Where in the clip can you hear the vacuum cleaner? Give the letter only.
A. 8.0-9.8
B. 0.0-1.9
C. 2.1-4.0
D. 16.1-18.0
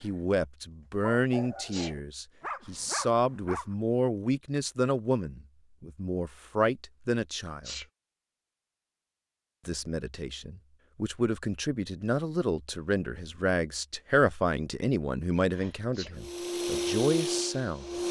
D.